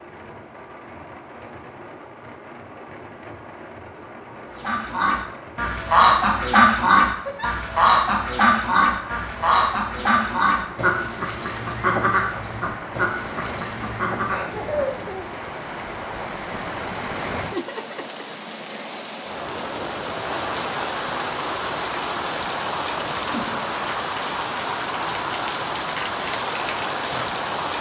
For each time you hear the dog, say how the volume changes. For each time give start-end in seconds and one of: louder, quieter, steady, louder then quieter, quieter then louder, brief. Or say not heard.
not heard.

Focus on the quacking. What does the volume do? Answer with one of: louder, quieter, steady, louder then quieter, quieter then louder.
quieter.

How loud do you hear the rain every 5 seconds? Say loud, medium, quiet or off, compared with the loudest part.
quiet, quiet, medium, medium, loud, loud.